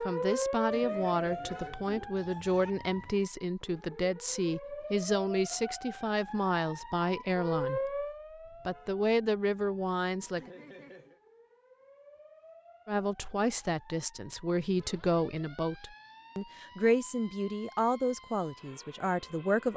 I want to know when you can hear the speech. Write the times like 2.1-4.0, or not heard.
0.0-8.1, 8.7-10.5, 12.8-19.7.